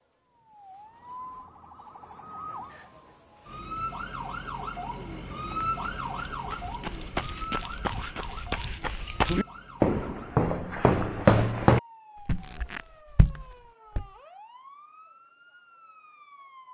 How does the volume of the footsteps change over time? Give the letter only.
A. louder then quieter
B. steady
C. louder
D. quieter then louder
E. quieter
A.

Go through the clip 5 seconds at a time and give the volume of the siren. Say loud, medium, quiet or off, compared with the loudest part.
loud, loud, quiet, quiet.